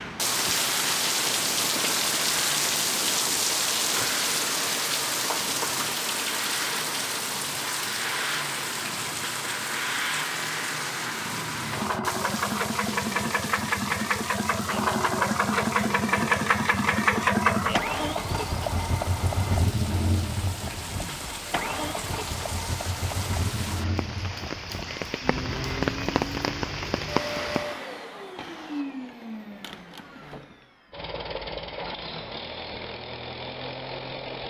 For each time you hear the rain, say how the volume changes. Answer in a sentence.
You can hear the rain from 0.0 to 27.8 s, getting quieter then louder.